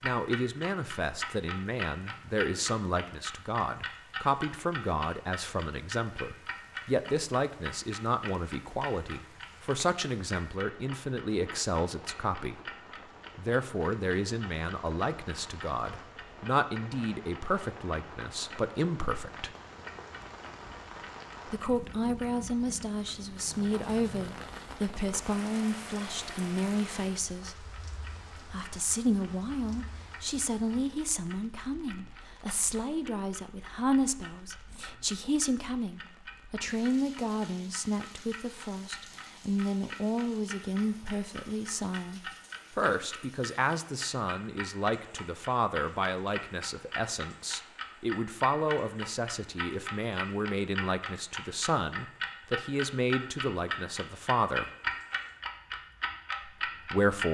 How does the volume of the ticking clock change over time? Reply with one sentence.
The loudness of the ticking clock goes down, then up.